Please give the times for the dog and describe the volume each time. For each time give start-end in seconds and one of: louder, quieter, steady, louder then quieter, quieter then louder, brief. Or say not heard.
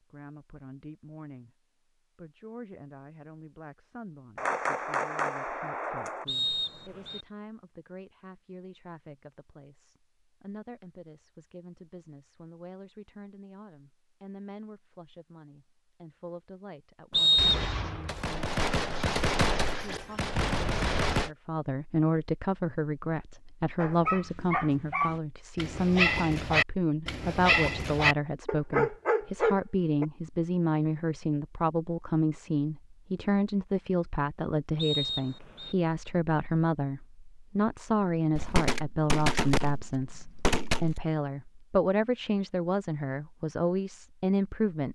23.8-30.1 louder.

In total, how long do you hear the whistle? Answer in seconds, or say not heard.
3 s.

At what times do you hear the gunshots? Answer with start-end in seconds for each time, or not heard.
4.3-6.2, 17.4-21.3, 38.4-41.0.